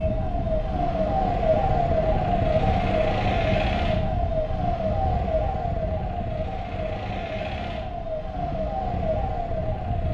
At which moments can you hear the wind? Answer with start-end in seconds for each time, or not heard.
0.0-10.0.